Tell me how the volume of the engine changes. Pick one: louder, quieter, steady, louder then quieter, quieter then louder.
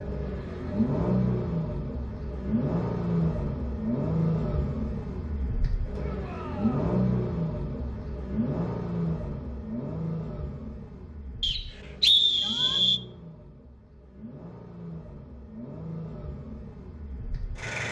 quieter.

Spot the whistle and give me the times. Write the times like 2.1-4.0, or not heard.
11.4-13.0.